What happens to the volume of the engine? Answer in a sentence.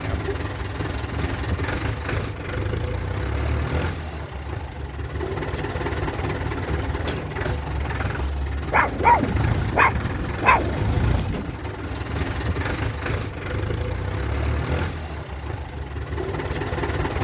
The loudness of the engine stays about the same.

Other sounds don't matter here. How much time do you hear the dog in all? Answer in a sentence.
The dog can be heard for 3 seconds in total.